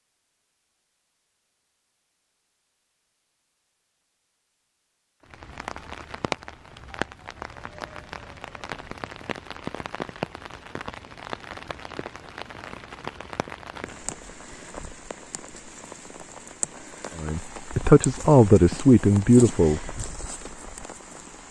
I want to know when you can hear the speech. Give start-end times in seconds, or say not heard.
17.1-20.0.